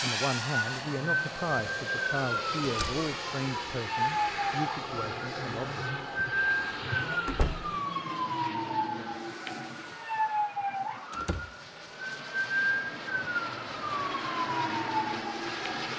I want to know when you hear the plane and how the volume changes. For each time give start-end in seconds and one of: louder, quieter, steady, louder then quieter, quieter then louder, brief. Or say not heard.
0.0-15.9 quieter then louder.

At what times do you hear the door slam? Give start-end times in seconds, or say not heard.
2.6-3.0, 7.2-7.8, 11.1-11.5.